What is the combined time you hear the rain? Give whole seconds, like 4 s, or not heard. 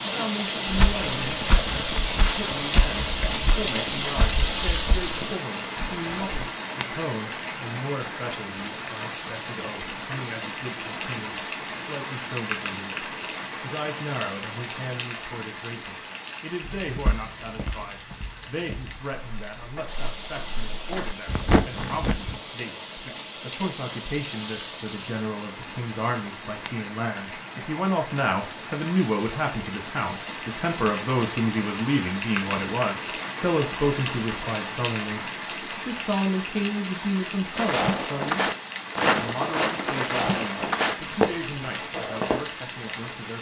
43 s.